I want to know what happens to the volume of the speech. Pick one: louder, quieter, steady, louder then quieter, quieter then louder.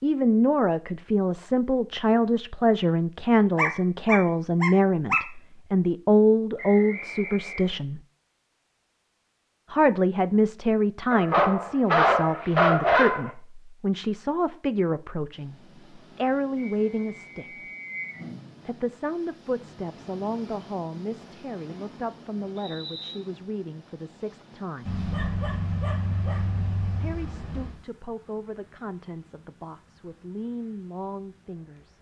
quieter.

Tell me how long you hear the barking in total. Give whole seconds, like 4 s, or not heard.
7 s.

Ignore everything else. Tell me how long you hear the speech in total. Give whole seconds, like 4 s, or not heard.
27 s.